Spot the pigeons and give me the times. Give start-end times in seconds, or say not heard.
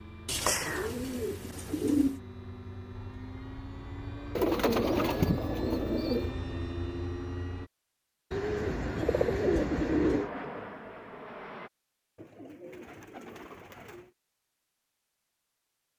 0.2-2.2, 4.3-6.3, 8.3-10.3, 12.2-14.1.